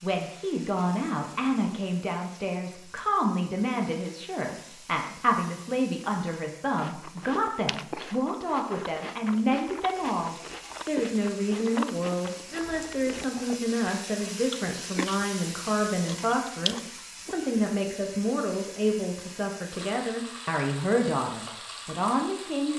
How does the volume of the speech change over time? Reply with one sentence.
The loudness of the speech stays about the same.